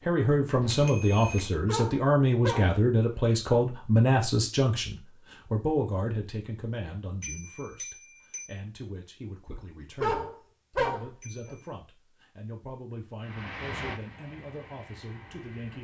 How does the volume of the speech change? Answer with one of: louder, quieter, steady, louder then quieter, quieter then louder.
quieter.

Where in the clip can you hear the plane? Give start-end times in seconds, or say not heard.
13.2-15.7.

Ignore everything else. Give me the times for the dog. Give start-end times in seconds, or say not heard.
1.6-3.2, 10.0-11.6.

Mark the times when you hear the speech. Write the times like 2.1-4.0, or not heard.
0.0-15.7.